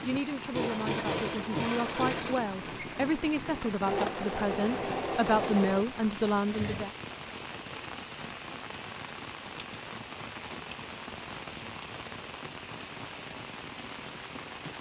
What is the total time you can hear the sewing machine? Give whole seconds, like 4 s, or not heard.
7 s.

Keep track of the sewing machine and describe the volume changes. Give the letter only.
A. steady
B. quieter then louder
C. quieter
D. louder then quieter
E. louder
A.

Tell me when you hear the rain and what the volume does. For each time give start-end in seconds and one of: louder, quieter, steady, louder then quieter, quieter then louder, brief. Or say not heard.
0.0-14.7 steady.